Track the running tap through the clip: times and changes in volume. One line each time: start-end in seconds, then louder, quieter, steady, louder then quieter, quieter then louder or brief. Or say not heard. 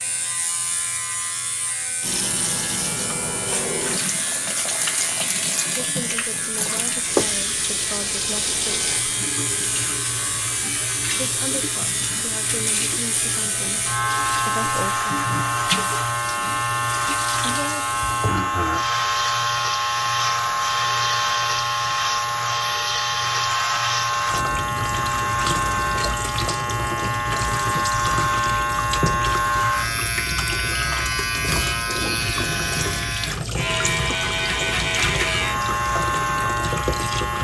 2.0-37.3 steady.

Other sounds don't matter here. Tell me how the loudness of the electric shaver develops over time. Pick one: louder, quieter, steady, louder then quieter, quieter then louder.
louder.